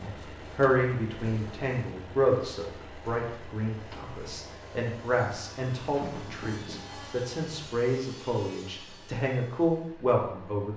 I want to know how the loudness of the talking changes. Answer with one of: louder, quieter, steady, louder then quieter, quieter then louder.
quieter then louder.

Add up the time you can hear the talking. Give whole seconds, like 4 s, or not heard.
11 s.